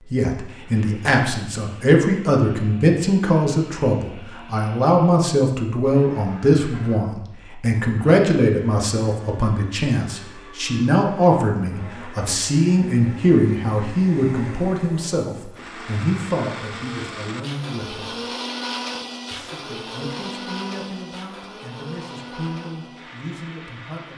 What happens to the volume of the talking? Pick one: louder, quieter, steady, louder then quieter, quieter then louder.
quieter.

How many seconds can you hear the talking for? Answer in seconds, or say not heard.
23 s.